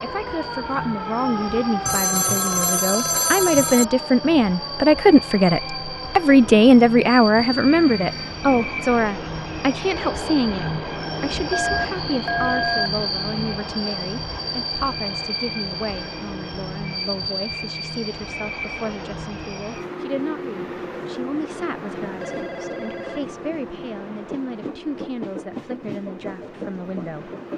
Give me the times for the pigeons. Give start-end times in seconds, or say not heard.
not heard.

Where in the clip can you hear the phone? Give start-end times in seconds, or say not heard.
1.9-3.9, 11.5-12.9, 22.2-23.4.